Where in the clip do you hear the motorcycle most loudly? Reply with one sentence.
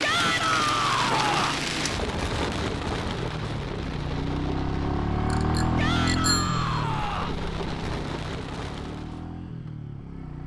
The loudest moment of the motorcycle is at 6 seconds.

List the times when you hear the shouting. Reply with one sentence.
You can hear the shouting from 0.0 to 1.6 s and from 5.8 to 7.4 s.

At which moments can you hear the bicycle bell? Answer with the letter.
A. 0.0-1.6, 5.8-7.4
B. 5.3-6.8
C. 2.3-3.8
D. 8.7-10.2
B.